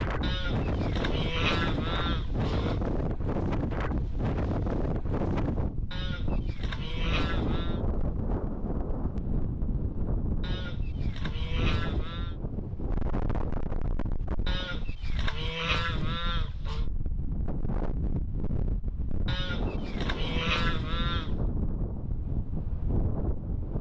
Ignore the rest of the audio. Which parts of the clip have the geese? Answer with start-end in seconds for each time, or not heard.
0.2-2.8, 5.9-7.8, 10.4-12.3, 14.4-16.9, 19.2-21.4.